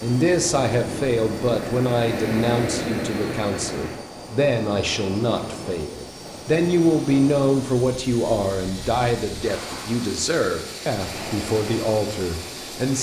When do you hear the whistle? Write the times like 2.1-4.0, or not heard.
not heard.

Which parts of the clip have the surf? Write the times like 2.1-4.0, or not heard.
0.0-12.9.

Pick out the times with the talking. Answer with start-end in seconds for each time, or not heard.
0.0-12.9.